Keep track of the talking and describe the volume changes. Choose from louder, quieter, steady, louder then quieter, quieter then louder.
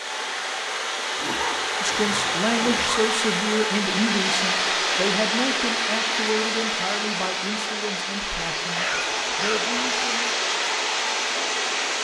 quieter.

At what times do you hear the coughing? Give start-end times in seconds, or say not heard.
1.1-3.0, 8.8-10.1.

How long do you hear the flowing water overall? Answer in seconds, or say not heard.
12 s.